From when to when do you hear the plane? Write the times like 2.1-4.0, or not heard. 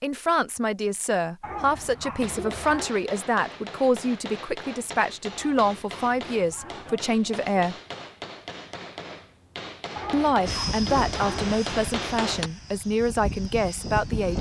10.4-14.3.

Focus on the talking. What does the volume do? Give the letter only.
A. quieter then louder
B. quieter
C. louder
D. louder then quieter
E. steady
E.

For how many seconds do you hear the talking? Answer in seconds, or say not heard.
12 s.